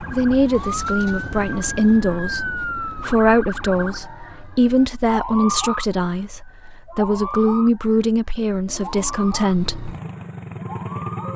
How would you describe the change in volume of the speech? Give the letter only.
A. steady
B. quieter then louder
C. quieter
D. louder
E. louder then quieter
A.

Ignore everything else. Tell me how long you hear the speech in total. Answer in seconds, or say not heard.
10 s.